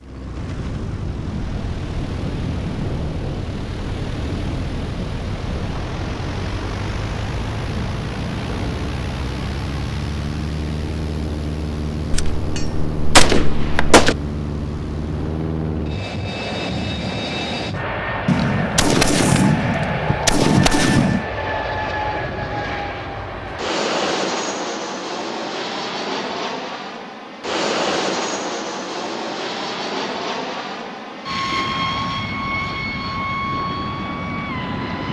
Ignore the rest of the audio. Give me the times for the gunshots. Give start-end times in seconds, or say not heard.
12.1-14.2, 18.2-21.2.